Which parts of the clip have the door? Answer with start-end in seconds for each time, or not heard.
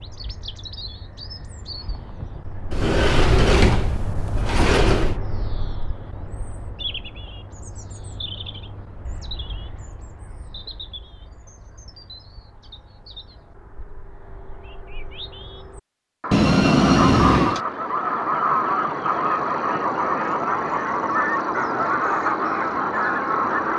2.7-5.2, 16.3-17.6.